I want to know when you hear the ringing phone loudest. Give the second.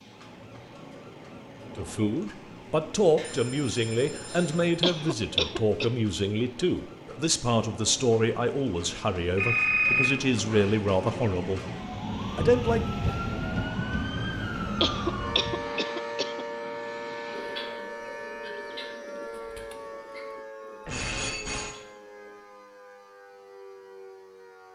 10 s.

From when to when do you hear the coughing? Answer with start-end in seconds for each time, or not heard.
4.8-5.9, 14.8-16.4.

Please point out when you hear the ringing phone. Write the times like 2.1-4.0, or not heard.
3.1-4.8, 9.3-10.8, 20.9-21.7.